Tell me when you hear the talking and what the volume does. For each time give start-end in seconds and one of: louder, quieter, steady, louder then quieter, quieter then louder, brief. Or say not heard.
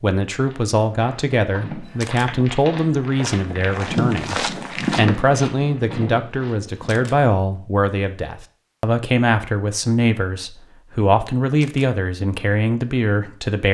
0.0-13.6 steady.